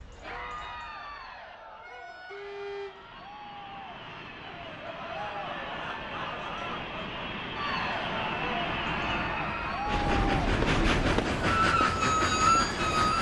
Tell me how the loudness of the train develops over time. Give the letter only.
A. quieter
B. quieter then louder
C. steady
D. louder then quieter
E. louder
E.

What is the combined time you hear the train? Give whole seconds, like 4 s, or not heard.
13 s.